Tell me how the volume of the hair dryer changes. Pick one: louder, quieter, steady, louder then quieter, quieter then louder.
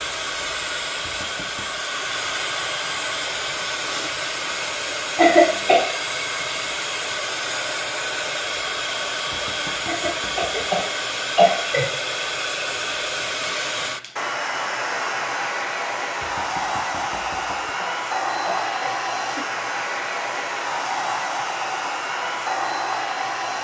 steady.